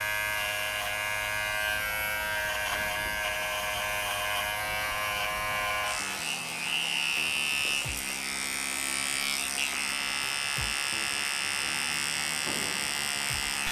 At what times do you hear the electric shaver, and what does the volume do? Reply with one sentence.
You can hear the electric shaver from 0.0 to 13.6 s, at a steady volume.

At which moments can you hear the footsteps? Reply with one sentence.
The footsteps can't be heard in this clip.